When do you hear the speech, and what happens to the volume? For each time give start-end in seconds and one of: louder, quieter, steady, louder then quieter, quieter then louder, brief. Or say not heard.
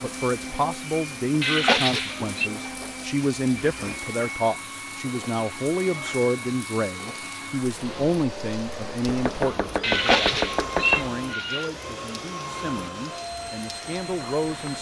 0.0-14.7 quieter.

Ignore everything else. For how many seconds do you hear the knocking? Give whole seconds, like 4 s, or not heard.
2 s.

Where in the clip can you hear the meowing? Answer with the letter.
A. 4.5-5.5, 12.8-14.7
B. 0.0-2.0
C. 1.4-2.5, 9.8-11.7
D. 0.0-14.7
C.